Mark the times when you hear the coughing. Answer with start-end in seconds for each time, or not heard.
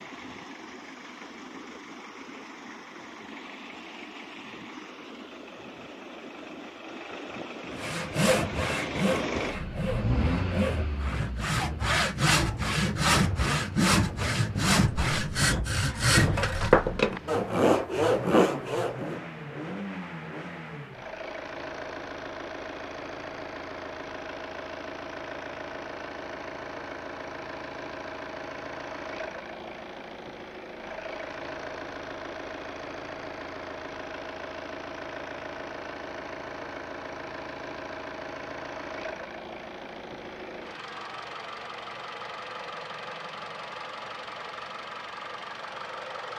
not heard.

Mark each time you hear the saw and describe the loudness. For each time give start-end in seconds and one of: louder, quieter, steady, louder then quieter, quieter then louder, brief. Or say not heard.
7.8-19.2 louder.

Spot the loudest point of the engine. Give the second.
10 s.